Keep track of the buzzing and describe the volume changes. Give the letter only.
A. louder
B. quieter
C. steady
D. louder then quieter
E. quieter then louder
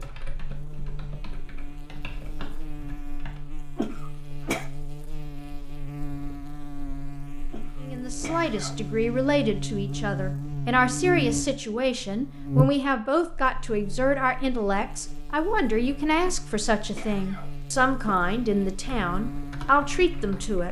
D.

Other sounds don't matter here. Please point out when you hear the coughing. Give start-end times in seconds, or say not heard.
3.8-4.7, 7.5-9.0, 16.2-18.2.